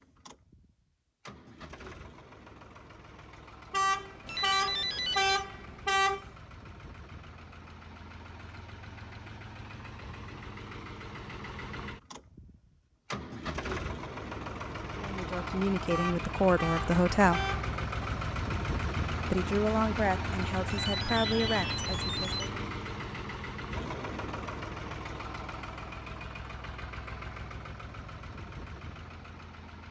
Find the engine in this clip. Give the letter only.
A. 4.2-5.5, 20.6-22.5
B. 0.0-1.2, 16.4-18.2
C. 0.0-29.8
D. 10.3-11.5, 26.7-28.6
C.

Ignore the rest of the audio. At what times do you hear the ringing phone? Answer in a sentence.
The ringing phone can be heard from 4.2 to 5.5 s and from 20.6 to 22.5 s.